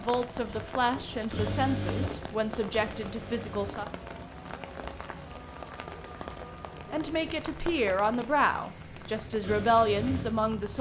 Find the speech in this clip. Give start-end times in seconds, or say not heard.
0.0-3.9, 6.9-10.7.